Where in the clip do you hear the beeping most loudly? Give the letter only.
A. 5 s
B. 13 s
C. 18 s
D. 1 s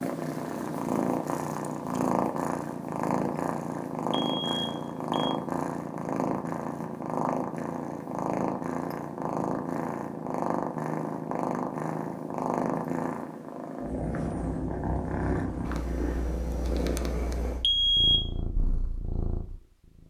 C.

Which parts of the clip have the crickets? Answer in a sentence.
You can't hear the crickets here.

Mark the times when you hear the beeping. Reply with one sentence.
The beeping can be heard from 4.1 to 5.3 s and from 17.6 to 18.3 s.